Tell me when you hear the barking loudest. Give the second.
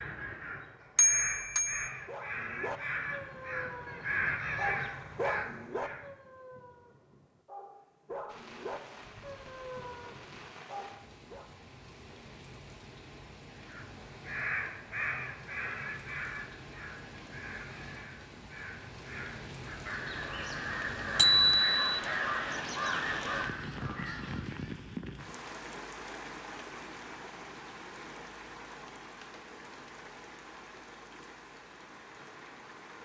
5 s.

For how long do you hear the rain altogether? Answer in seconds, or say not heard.
25 s.